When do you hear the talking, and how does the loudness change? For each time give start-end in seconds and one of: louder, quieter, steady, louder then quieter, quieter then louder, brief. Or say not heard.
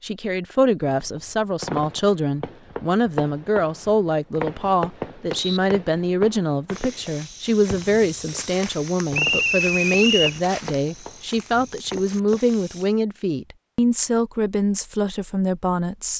0.0-16.1 steady.